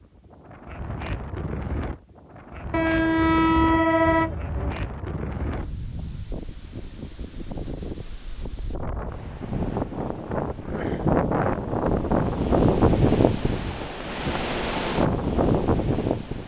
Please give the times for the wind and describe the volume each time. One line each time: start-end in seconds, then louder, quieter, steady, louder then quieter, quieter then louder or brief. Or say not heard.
0.0-16.4 louder.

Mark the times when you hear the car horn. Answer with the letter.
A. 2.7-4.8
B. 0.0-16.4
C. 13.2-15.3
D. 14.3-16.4
A.